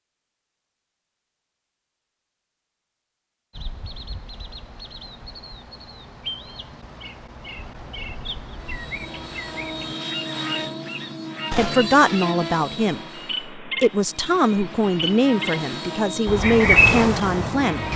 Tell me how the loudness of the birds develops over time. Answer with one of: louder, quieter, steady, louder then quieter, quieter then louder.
louder.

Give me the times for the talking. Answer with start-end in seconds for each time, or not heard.
11.6-17.9.